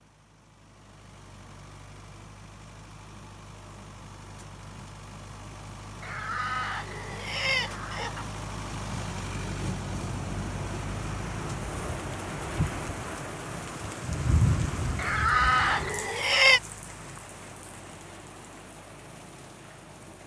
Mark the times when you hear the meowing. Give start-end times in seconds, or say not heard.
not heard.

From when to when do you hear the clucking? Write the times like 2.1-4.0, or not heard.
6.0-8.2, 14.9-16.6.